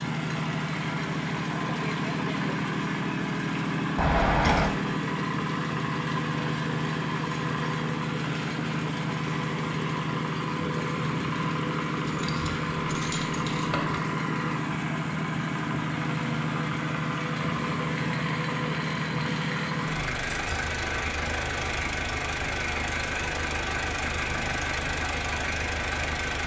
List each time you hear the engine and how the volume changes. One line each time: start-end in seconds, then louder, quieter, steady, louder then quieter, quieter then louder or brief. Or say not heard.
0.0-26.4 steady.